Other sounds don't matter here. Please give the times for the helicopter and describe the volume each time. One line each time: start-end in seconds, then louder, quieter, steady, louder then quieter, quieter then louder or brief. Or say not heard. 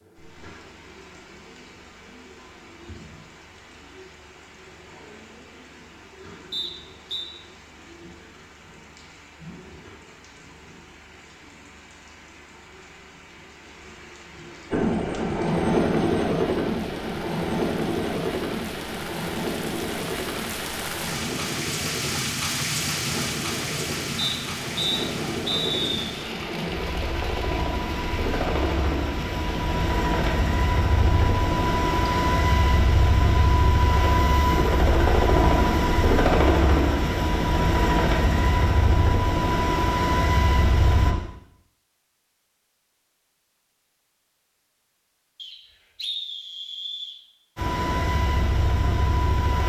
14.7-41.1 quieter then louder
47.5-49.6 brief.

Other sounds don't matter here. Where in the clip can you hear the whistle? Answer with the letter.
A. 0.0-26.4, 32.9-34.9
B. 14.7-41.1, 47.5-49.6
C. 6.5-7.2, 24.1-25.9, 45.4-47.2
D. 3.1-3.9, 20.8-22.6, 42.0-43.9
C.